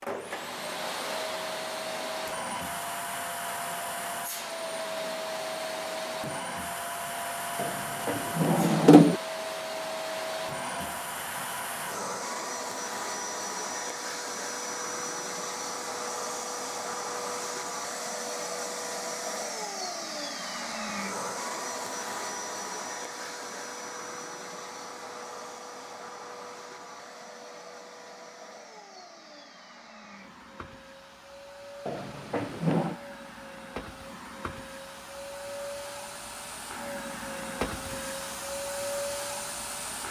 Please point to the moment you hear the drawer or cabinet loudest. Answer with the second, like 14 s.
9 s.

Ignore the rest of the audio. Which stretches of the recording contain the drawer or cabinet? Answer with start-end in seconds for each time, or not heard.
7.6-9.2, 31.9-33.0.